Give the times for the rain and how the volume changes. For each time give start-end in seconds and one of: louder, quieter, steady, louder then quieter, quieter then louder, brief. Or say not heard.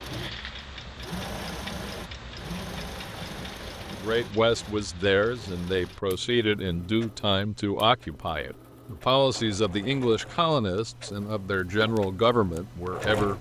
not heard.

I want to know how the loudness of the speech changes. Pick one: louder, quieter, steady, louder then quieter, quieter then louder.
steady.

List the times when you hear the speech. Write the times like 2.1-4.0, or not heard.
3.9-13.3.